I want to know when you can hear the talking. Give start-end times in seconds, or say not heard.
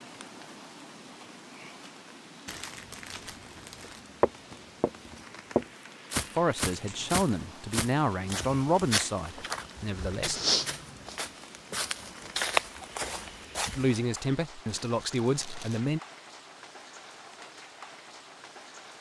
6.3-10.4, 13.8-16.0.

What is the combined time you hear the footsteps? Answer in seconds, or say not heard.
10 s.